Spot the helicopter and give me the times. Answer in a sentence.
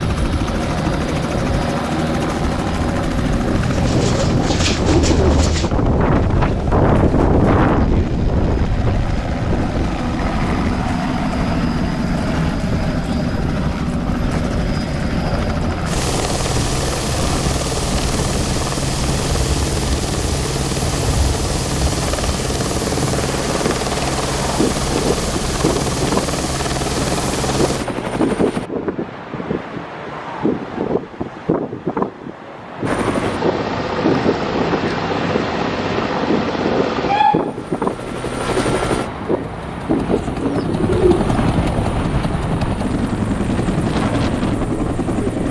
You can hear the helicopter from 0.0 to 28.7 s and from 32.8 to 45.4 s.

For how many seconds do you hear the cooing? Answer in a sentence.
You can hear the cooing for 3 seconds altogether.